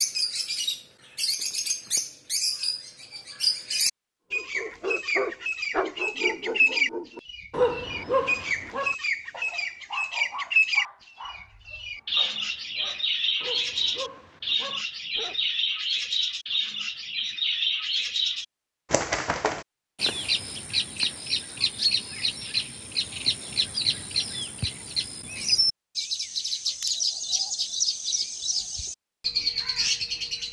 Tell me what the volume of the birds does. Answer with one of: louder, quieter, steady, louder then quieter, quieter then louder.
steady.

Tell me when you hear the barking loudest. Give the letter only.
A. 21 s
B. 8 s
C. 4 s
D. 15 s
B.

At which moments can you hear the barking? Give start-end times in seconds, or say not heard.
4.3-15.4.